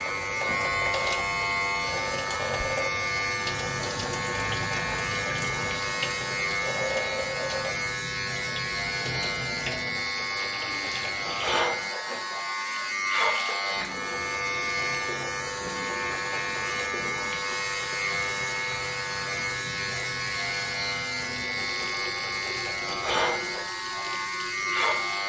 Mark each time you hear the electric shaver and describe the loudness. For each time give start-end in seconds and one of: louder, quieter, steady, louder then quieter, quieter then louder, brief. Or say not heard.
0.0-25.2 steady.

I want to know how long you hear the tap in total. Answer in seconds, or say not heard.
25 s.